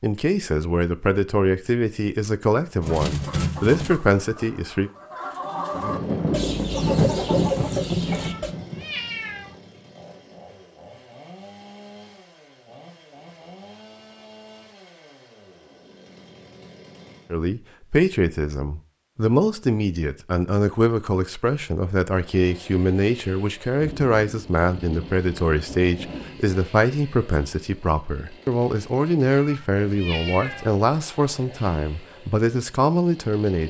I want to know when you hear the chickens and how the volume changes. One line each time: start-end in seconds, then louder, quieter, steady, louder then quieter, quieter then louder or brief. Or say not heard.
2.8-8.5 quieter then louder.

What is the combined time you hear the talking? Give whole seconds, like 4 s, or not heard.
21 s.